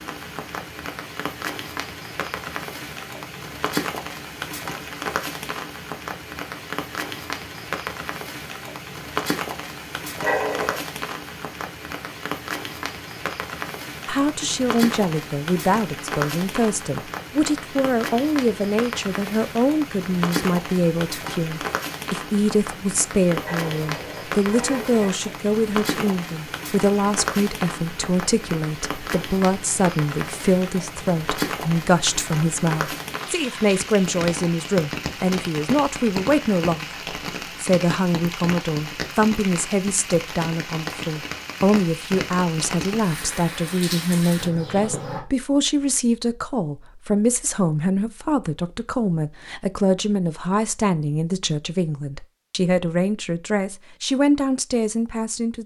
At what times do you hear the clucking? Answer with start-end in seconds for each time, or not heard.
not heard.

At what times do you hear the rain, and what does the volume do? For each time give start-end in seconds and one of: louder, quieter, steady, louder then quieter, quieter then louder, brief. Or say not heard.
0.0-44.5 steady.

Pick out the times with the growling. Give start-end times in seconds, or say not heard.
10.2-10.8, 23.4-25.2, 44.4-45.2.